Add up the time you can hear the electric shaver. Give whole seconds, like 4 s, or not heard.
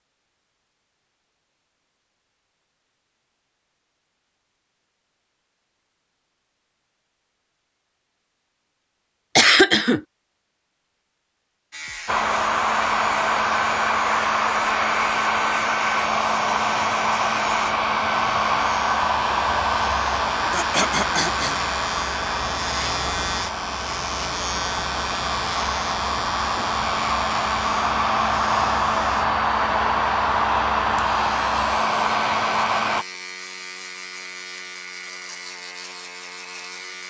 25 s.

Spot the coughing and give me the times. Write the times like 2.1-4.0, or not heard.
9.3-10.0, 20.5-21.6.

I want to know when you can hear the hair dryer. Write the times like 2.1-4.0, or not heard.
12.1-33.0.